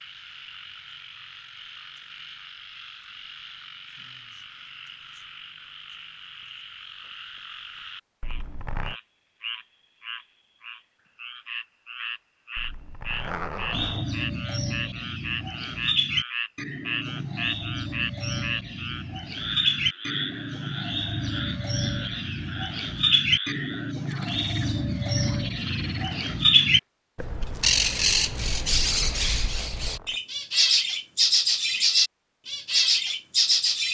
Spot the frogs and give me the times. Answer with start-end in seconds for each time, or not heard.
0.0-26.8.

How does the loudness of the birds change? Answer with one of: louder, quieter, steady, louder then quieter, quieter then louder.
louder.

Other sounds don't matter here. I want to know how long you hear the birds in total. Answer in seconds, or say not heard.
20 s.